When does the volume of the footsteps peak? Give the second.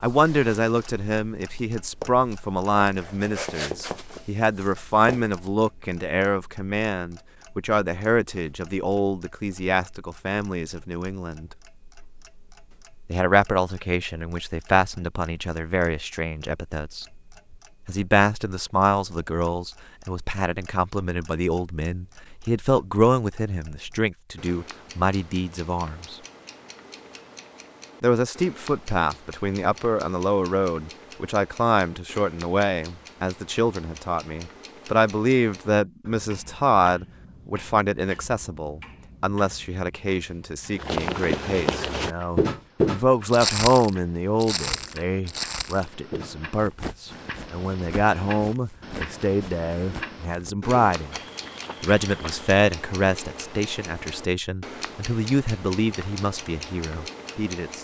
43 s.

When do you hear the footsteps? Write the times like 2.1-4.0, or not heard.
0.0-5.5, 40.7-52.5.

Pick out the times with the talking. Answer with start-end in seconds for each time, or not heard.
0.0-11.5, 13.1-17.1, 17.9-26.1, 28.0-51.1, 51.8-57.7.